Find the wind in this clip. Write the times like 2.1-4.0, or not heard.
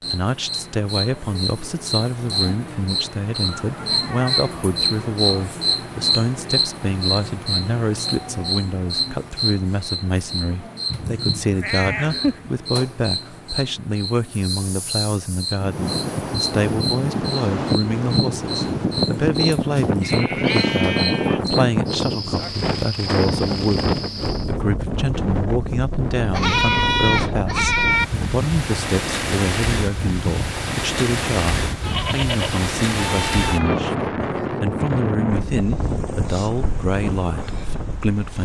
15.6-38.4.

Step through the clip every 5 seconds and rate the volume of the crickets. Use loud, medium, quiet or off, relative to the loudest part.
loud, loud, medium, medium, medium, off, off, off.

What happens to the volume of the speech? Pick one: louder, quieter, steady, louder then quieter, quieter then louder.
steady.